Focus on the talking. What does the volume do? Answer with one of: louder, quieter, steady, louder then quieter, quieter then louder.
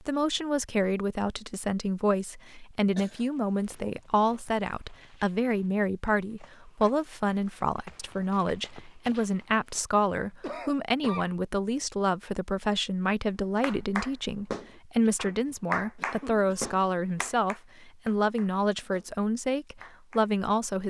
steady.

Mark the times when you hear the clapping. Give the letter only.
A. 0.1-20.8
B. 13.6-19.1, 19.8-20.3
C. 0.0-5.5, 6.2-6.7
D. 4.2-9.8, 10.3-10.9
B.